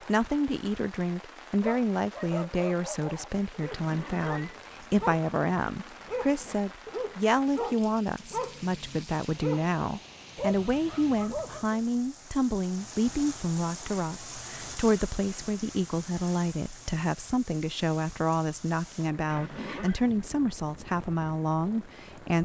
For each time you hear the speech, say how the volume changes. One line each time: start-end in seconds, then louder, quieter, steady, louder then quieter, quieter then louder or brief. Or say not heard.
0.1-22.4 steady.